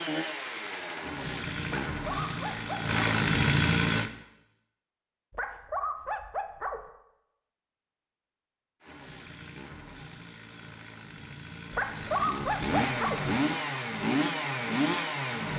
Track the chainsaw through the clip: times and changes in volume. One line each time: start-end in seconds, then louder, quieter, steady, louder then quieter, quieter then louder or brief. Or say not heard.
0.0-4.1 louder
8.8-15.5 louder.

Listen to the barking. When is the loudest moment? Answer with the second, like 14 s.
12 s.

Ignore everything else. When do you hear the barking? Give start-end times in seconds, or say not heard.
1.6-3.0, 5.3-6.8, 11.7-13.2.